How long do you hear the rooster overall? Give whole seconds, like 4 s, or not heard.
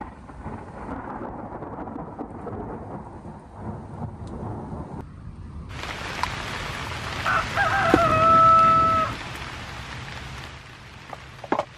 2 s.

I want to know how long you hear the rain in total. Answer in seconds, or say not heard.
12 s.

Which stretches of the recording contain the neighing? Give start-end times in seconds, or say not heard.
not heard.